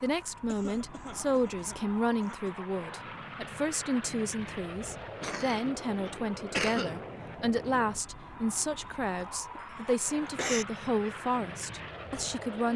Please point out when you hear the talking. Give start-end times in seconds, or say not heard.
0.0-12.7.